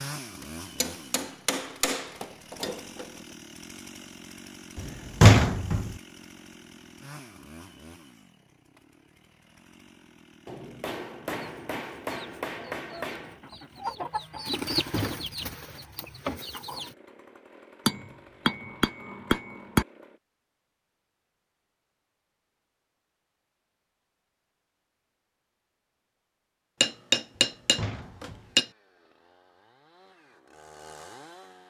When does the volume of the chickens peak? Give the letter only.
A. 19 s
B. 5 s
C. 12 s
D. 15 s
D.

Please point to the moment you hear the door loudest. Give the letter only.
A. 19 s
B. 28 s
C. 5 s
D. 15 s
C.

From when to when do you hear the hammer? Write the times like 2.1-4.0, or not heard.
0.4-3.2, 10.4-13.4, 17.9-19.9, 26.8-28.6.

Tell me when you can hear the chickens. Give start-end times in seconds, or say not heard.
11.4-16.9.